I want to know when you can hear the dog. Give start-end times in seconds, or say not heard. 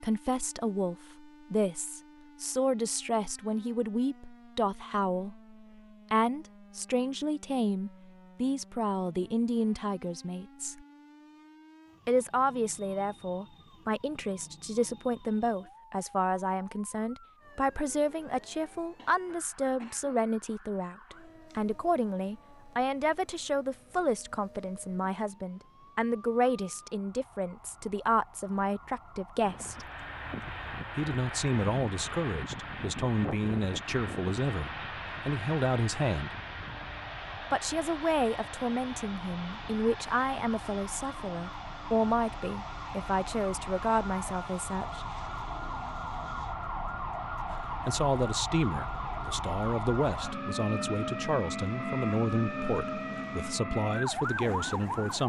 not heard.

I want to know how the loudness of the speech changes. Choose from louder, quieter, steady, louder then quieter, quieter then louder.
steady.